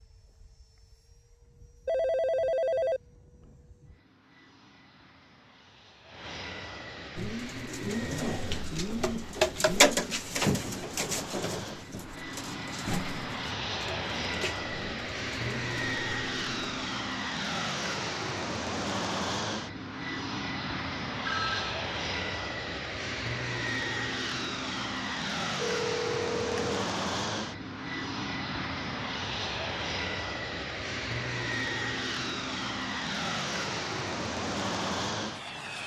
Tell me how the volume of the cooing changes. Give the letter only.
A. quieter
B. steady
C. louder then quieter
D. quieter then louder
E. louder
C.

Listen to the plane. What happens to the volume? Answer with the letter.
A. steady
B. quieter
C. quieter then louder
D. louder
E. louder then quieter
D.